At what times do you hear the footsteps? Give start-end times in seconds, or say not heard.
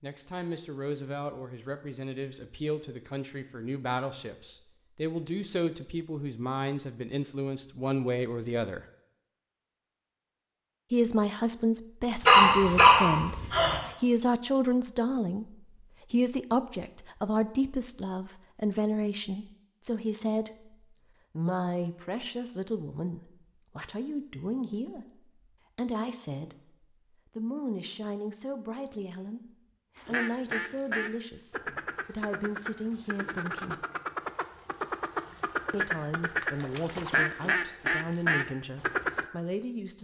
not heard.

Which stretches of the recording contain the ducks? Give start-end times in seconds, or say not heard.
29.9-39.2.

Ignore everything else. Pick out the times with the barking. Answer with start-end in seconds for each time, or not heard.
12.2-13.8.